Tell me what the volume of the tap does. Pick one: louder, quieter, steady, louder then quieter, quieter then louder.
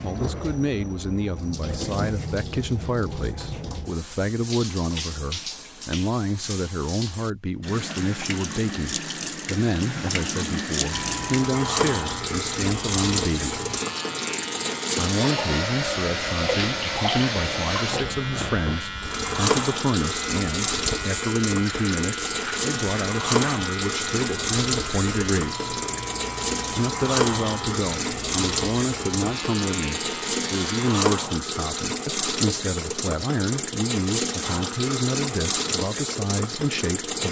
louder.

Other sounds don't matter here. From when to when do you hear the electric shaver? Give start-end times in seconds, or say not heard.
10.9-31.1.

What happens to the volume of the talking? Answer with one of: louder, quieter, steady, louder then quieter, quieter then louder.
steady.